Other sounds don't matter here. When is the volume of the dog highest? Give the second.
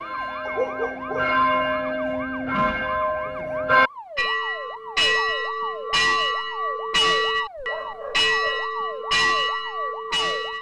1 s.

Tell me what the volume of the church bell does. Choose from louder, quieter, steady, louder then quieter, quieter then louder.
steady.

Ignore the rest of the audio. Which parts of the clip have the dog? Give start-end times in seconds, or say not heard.
0.5-1.8, 7.5-8.7.